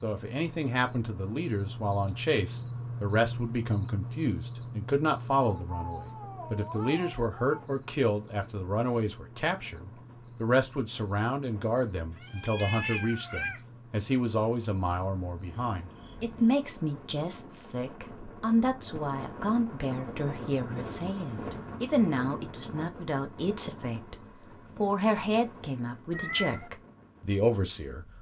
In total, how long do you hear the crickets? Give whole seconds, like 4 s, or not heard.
17 s.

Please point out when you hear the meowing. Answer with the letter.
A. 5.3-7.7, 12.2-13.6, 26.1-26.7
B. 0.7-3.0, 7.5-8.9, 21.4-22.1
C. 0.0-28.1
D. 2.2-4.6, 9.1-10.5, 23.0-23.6
A.